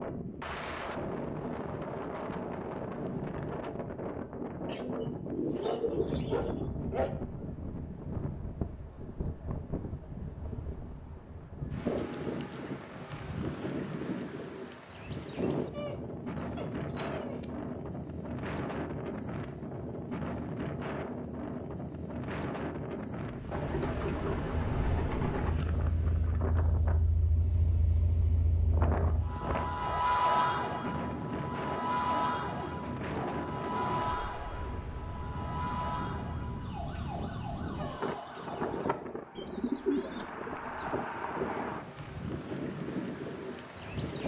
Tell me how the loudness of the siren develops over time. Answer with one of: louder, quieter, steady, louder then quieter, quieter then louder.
louder then quieter.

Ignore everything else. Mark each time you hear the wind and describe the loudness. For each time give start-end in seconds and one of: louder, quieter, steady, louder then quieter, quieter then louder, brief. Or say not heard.
0.0-44.2 steady.